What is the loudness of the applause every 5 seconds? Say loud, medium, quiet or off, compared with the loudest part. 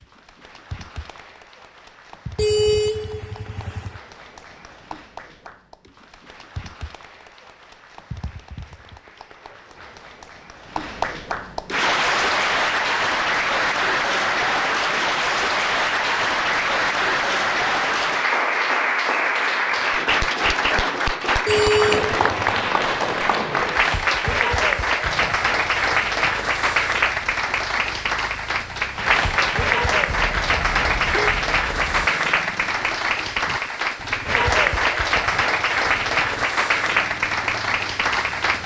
quiet, quiet, loud, loud, loud, loud, loud, loud.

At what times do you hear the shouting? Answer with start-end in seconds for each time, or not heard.
not heard.